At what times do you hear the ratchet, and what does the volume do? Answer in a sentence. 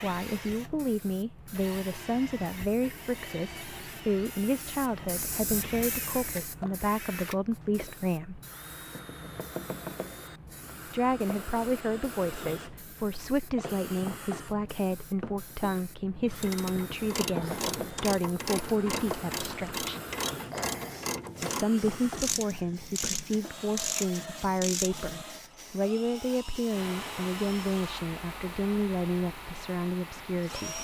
You can hear the ratchet from 16.3 to 25.2 s, at a steady volume.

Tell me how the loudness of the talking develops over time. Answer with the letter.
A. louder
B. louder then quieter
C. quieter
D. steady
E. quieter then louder
D.